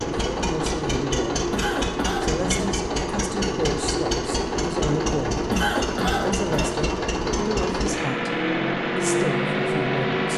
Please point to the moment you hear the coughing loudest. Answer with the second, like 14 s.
6 s.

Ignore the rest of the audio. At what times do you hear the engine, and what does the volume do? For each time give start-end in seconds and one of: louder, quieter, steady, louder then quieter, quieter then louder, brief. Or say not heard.
0.0-10.3 steady.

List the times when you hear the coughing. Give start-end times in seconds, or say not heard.
1.5-2.7, 5.5-6.7.